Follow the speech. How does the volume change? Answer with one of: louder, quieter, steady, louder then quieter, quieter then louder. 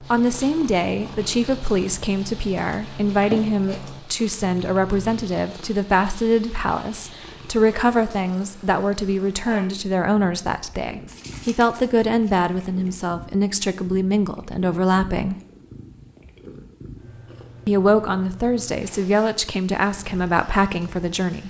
steady.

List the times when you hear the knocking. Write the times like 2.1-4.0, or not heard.
not heard.